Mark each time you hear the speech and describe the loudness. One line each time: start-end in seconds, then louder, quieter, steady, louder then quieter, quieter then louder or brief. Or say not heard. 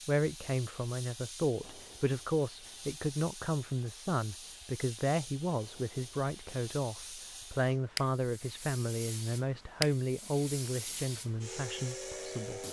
0.1-12.6 steady.